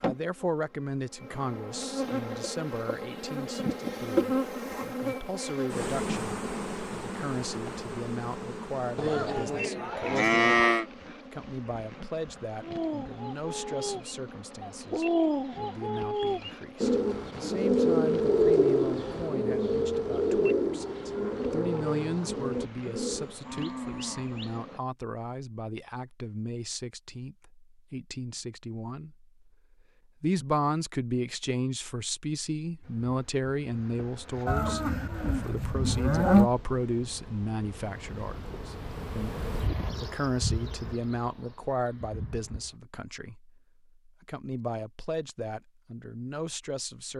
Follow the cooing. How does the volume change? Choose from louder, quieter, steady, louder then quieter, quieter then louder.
louder then quieter.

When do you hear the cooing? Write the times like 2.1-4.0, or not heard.
12.6-23.4.